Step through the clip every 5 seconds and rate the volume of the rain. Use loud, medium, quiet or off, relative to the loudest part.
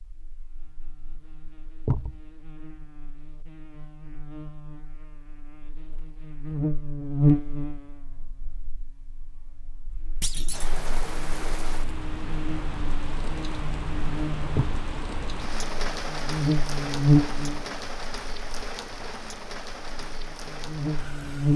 off, off, loud, loud, medium.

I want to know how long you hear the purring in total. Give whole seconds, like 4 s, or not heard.
not heard.